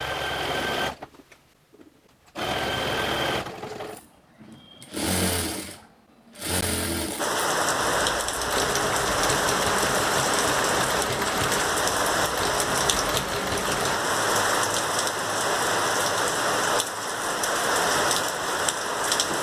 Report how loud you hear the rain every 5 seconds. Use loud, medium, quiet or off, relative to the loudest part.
off, loud, loud, loud.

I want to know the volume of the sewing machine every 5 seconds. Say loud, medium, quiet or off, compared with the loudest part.
loud, loud, loud, off.